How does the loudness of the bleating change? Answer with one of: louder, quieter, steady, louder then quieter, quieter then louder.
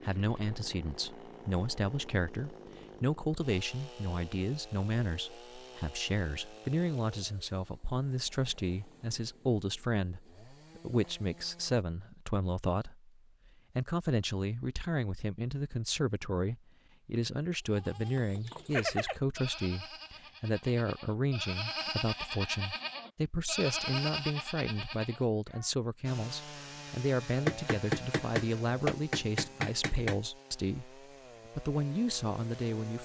quieter then louder.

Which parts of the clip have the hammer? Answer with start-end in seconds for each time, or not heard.
27.4-30.2.